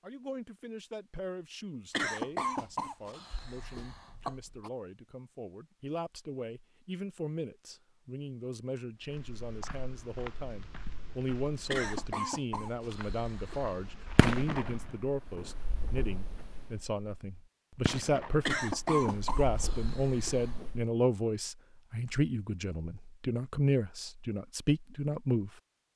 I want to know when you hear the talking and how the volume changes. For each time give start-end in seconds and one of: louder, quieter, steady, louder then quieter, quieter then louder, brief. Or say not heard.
0.0-25.5 louder.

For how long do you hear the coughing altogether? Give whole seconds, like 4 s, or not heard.
7 s.